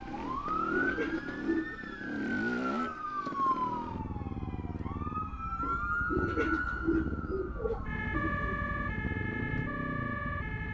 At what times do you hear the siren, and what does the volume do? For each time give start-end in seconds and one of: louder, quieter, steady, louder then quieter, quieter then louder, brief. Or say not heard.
0.0-10.6 steady.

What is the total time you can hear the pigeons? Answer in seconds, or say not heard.
5 s.